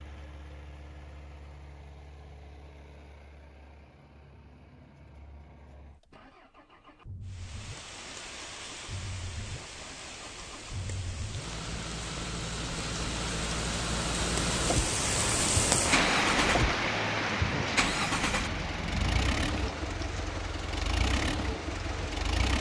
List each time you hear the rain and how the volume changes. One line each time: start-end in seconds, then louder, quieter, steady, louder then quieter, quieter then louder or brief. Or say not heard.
7.2-22.5 louder then quieter.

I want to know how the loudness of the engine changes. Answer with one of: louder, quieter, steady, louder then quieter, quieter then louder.
louder.